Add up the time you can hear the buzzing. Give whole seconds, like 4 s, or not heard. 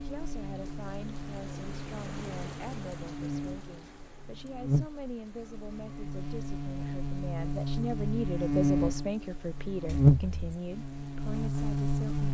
12 s.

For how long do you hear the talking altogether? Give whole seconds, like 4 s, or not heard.
12 s.